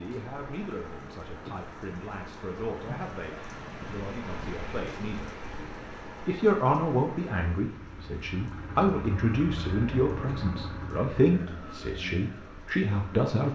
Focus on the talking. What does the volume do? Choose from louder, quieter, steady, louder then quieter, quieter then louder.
louder.